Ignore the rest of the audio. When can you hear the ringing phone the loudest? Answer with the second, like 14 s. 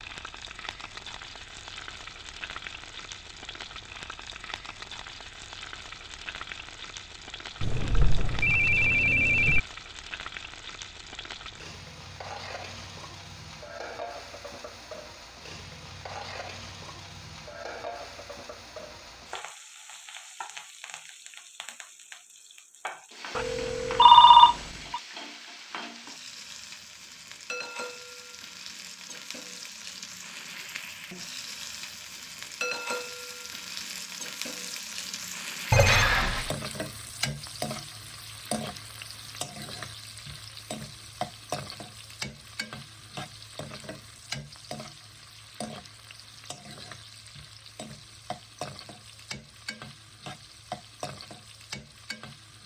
24 s.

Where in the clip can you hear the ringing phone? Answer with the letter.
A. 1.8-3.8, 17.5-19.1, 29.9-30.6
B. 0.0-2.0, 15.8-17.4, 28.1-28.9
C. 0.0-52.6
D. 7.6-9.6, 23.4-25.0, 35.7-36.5
D.